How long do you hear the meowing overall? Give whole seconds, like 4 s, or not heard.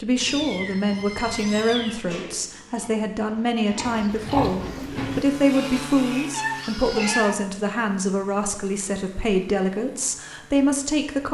3 s.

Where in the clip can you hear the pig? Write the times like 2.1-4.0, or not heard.
1.8-7.3.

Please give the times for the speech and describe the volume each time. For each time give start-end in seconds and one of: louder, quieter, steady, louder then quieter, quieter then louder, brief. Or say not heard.
0.0-11.2 steady.